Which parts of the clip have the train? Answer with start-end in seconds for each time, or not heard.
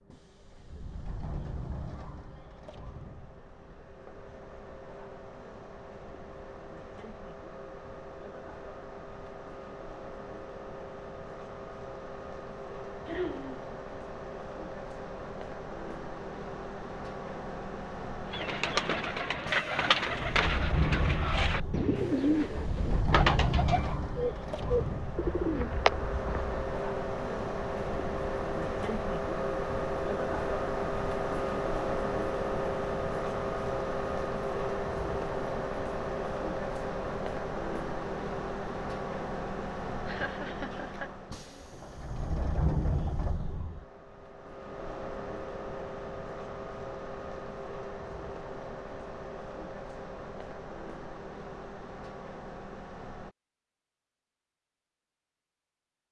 0.0-53.3.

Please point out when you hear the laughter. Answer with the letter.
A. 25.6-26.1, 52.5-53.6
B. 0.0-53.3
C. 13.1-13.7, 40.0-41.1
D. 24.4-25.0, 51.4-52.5
C.